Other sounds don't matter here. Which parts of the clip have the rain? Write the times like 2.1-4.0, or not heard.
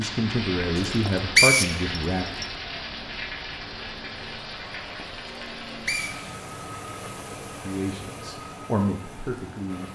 0.0-6.4.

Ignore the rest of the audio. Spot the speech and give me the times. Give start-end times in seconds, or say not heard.
0.0-2.2, 7.7-9.9.